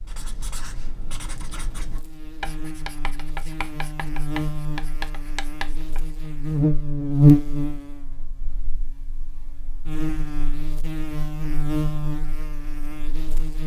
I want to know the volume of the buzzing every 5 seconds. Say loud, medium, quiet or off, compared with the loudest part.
quiet, loud, medium.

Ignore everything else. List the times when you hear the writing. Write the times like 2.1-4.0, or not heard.
0.0-6.2.